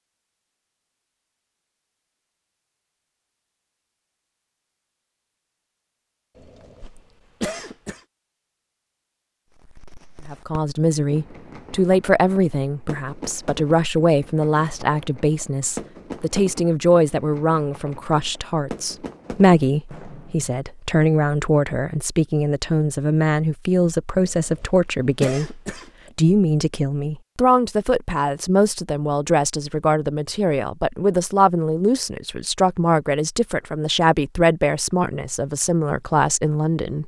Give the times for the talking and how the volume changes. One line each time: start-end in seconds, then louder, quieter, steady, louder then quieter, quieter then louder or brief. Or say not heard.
10.2-37.0 steady.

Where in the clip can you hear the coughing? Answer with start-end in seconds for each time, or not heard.
6.3-8.0, 24.1-26.1.